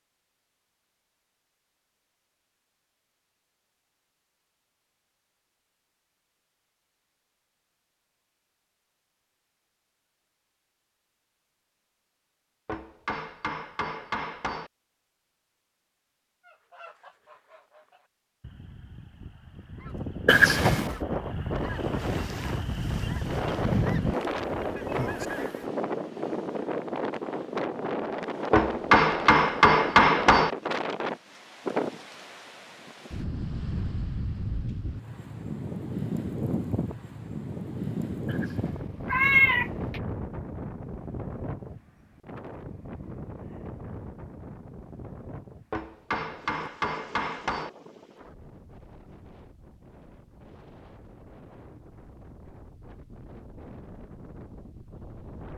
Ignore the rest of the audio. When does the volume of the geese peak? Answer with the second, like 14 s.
24 s.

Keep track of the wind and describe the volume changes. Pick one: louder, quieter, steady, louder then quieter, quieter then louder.
quieter.